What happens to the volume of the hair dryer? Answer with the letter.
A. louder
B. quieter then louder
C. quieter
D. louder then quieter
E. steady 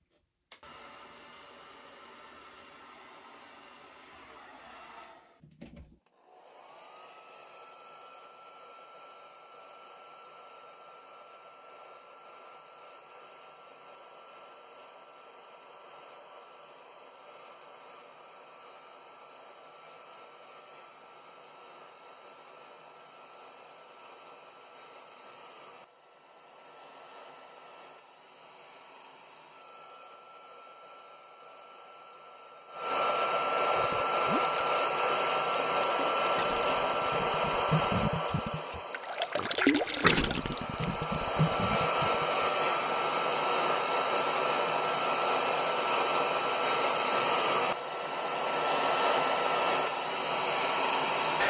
A.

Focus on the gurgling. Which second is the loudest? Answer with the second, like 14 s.
40 s.